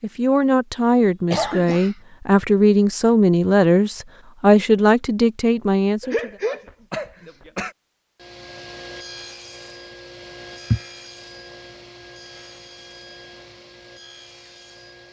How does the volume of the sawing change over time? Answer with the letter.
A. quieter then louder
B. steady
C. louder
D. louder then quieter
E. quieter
E.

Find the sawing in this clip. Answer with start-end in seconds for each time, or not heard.
8.2-15.0.